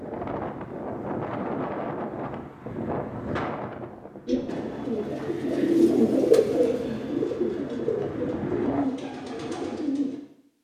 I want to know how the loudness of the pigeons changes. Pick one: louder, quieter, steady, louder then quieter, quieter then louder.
louder then quieter.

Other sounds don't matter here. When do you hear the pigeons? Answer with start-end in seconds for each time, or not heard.
4.2-10.2.